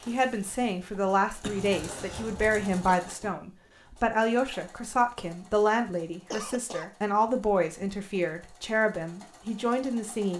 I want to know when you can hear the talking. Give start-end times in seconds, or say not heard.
0.1-10.3.